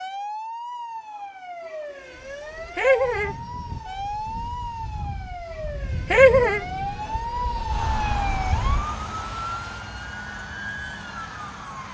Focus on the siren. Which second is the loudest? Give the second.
8 s.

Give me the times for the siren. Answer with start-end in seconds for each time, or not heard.
0.0-11.8.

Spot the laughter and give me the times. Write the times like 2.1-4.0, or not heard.
2.8-3.4, 6.1-6.6.